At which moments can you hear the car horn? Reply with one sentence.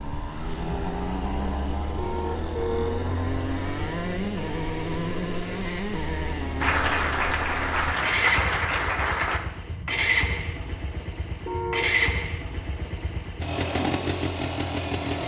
You can hear the car horn from 1.9 to 3.0 s and from 11.4 to 12.1 s.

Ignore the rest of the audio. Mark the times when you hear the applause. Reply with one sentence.
You can hear the applause from 6.6 to 9.4 s.